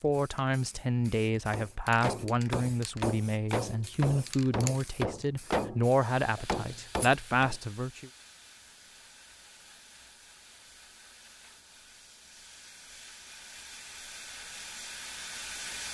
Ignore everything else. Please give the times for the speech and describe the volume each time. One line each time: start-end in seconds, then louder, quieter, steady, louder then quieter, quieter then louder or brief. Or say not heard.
0.0-8.1 steady.